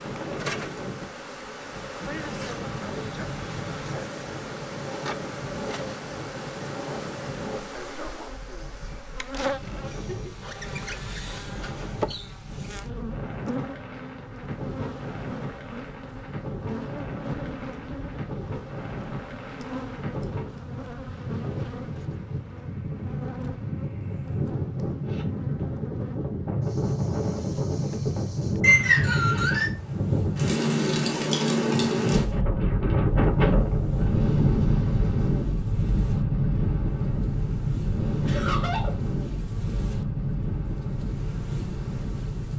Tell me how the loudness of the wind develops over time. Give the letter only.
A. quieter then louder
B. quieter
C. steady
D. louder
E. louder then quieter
D.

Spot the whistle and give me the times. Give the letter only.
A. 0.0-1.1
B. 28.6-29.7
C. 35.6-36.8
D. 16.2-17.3
B.